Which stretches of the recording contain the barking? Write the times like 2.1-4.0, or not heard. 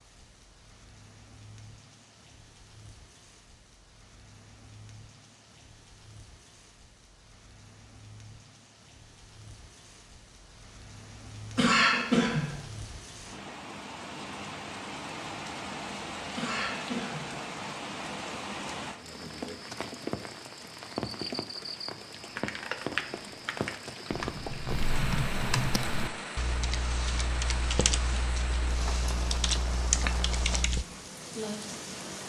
not heard.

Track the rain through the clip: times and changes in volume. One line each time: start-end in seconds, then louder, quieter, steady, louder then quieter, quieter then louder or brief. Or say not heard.
0.0-32.2 louder.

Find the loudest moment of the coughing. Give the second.
12 s.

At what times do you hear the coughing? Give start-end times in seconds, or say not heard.
11.6-12.6, 16.4-17.4.